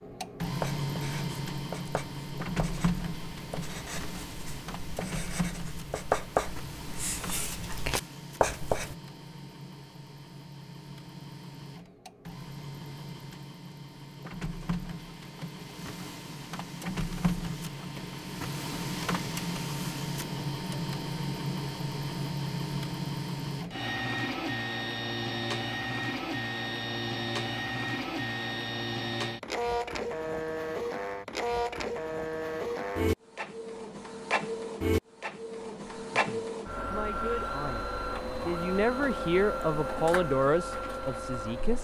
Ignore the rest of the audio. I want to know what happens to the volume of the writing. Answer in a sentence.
The loudness of the writing goes up.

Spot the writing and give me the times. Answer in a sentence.
You can hear the writing from 0.4 to 8.9 s.